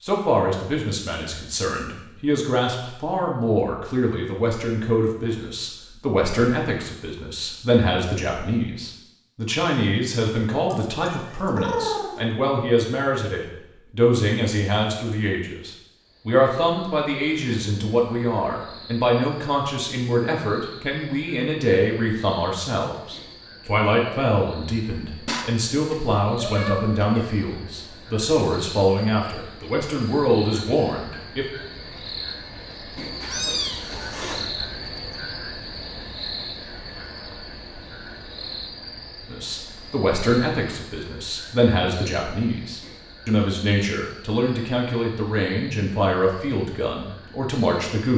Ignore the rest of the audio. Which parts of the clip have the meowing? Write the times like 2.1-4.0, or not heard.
10.7-12.2, 25.2-27.2, 33.2-34.5.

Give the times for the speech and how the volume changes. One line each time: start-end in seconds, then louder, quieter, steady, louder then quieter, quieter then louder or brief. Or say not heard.
0.0-31.4 steady
39.2-48.1 steady.